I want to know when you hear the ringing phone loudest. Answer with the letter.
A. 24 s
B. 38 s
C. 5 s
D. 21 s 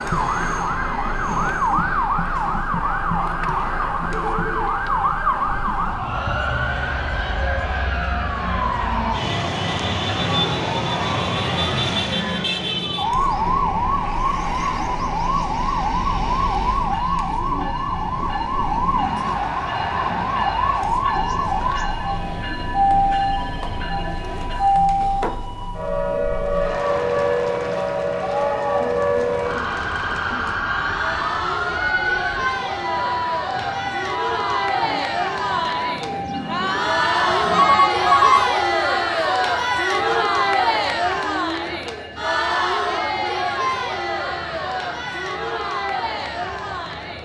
B.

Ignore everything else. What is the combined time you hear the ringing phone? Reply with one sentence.
The ringing phone can be heard for 4 seconds in total.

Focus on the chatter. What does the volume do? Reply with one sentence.
The volume of the chatter goes up.